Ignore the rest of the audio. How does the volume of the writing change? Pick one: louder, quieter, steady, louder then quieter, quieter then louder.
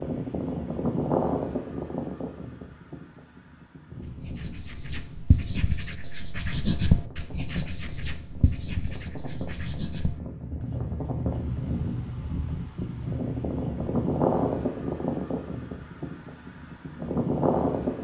louder then quieter.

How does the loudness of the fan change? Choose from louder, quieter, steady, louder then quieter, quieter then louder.
quieter then louder.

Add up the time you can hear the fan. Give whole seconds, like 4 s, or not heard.
18 s.